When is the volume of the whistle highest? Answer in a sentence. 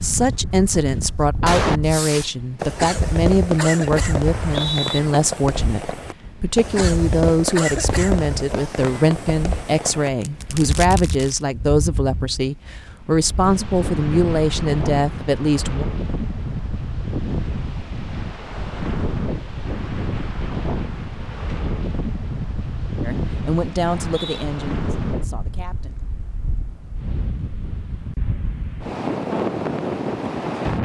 The loudest moment of the whistle is at 5 seconds.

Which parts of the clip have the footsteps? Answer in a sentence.
You can't hear the footsteps here.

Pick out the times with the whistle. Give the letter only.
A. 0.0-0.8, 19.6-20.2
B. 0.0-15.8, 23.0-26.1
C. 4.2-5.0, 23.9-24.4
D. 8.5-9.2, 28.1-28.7
C.